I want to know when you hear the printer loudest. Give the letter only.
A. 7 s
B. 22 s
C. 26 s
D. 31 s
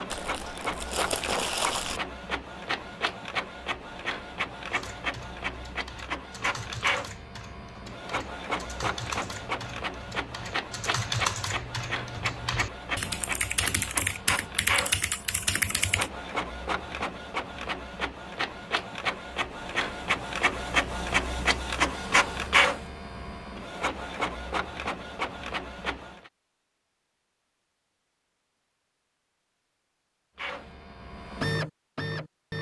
B.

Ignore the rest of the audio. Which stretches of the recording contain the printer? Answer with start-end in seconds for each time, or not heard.
0.0-26.3, 30.4-32.5.